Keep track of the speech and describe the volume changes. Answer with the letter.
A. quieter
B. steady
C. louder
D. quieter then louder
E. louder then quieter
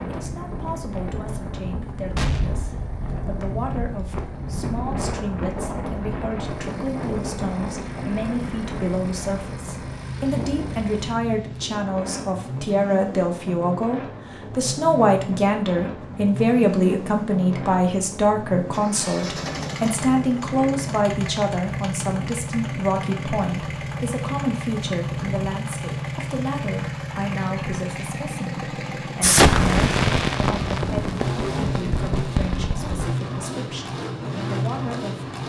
E.